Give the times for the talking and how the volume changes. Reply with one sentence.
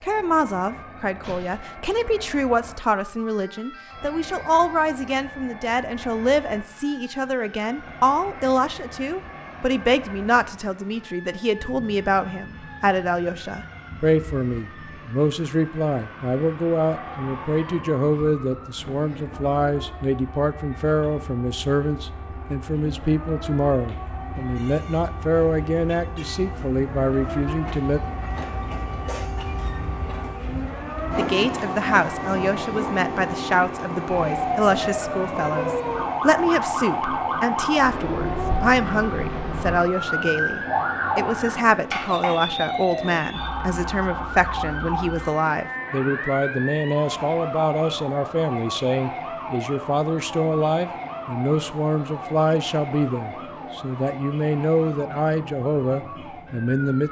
The talking can be heard from 0.0 to 28.0 s, at a steady volume; and from 31.1 to 57.0 s, at a steady volume.